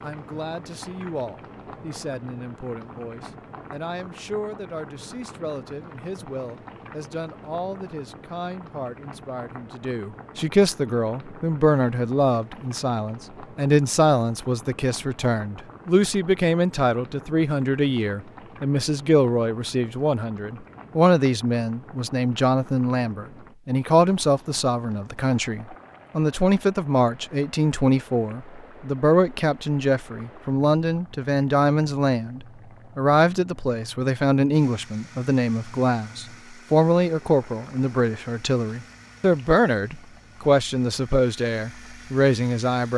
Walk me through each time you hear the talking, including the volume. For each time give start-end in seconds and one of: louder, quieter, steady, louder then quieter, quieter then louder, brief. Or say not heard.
0.0-42.9 louder.